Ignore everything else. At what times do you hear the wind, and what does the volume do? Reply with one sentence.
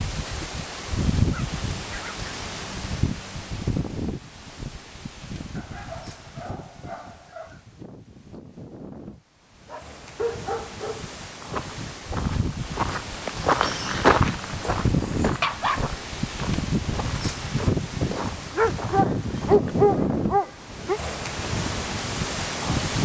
The wind can be heard from 0.0 to 23.0 s, getting quieter then louder.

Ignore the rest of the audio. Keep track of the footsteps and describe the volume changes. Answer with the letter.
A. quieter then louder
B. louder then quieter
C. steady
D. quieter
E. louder
B.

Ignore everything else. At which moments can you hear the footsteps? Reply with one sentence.
You can hear the footsteps from 11.4 to 19.6 s.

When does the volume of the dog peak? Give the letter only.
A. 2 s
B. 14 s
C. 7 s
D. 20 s
D.